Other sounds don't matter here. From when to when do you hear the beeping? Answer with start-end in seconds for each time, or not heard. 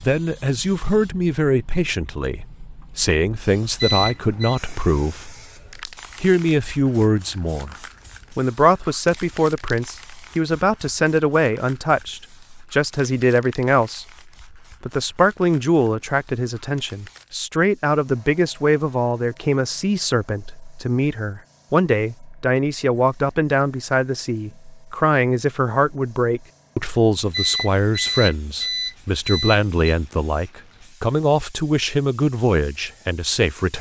3.8-4.6, 27.3-29.9.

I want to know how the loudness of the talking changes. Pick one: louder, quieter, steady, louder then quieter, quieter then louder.
steady.